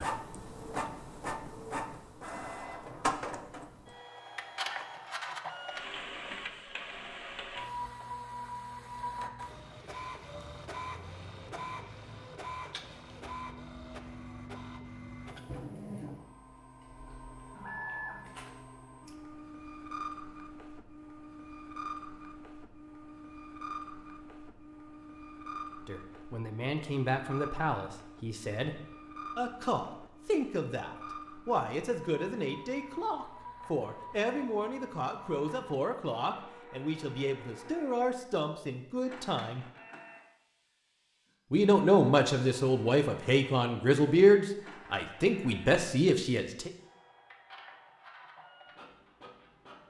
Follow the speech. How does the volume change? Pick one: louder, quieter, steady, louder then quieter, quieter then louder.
louder.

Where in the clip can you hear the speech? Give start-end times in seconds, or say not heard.
25.9-39.6, 41.5-46.7.